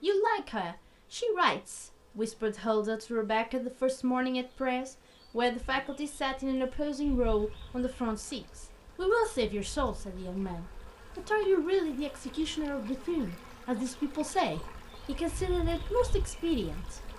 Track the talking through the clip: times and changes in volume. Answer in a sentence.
You can hear the talking from 0.0 to 17.0 s, at a steady volume.